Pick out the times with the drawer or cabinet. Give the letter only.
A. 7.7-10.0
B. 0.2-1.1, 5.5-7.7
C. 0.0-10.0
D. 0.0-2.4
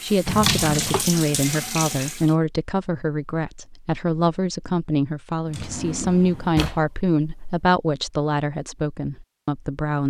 B.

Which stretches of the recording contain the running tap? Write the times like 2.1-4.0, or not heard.
0.0-2.4.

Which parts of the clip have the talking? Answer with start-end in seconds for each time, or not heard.
0.0-10.0.